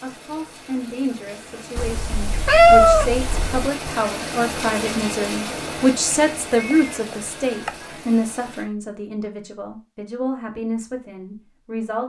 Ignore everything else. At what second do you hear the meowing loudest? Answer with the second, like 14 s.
3 s.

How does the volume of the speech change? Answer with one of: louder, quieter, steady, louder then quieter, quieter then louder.
louder then quieter.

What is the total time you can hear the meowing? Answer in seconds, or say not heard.
3 s.